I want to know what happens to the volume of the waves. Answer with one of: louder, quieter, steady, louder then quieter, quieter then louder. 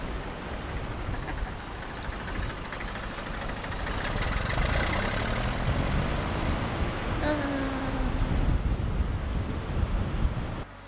louder.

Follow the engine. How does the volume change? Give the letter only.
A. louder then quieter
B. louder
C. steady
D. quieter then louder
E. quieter
A.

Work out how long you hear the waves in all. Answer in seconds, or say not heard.
11 s.